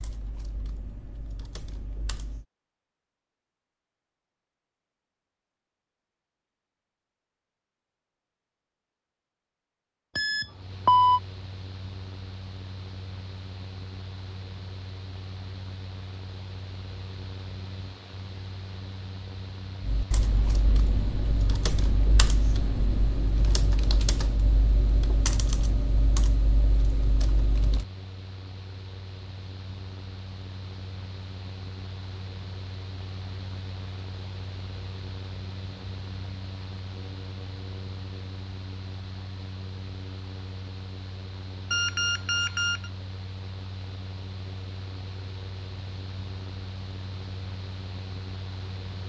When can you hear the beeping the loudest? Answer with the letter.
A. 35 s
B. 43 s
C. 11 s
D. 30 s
C.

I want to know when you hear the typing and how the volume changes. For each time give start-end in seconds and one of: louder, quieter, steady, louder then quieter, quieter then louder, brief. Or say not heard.
0.0-2.5 brief
19.8-27.9 steady.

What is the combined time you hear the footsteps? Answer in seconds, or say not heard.
not heard.